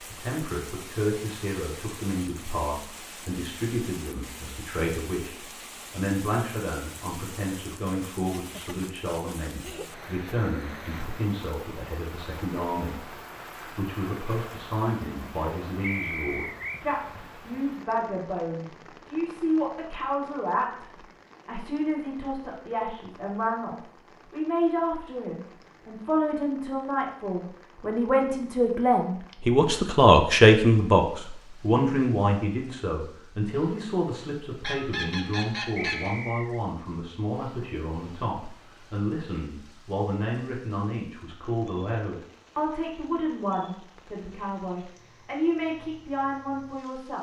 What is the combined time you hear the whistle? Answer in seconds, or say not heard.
2 s.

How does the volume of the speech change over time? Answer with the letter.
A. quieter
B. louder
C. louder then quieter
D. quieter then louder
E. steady
C.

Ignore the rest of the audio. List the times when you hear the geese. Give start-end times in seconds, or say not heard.
34.6-36.1.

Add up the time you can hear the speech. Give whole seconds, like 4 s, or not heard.
47 s.